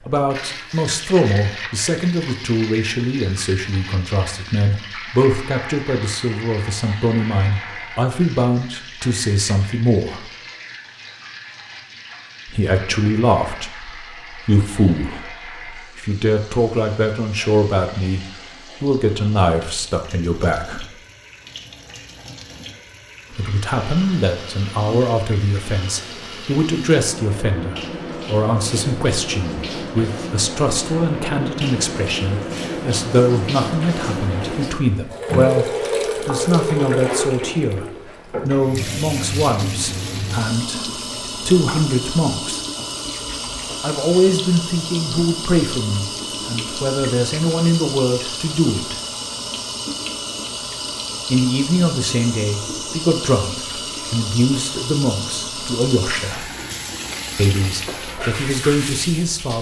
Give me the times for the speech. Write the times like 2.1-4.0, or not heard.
0.1-10.3, 12.4-20.9, 23.3-42.6, 43.8-49.0, 51.3-56.5, 57.4-59.5.